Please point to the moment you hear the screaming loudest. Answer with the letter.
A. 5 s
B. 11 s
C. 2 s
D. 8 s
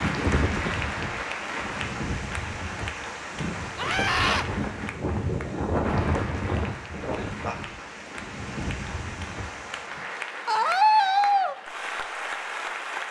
B.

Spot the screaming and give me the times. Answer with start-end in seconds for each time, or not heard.
3.8-4.5, 10.4-11.6.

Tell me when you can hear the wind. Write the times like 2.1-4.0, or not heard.
0.0-10.1.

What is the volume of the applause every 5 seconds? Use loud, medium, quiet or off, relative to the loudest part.
loud, medium, loud.